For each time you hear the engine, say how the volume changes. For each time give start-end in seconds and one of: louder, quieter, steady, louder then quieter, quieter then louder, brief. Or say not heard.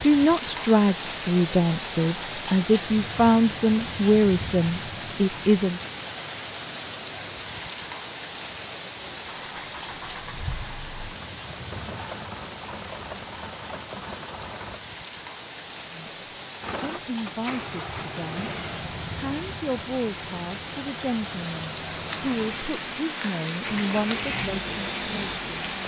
8.5-14.8 steady
16.6-25.8 quieter then louder.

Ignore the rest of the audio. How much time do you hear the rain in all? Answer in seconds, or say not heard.
26 s.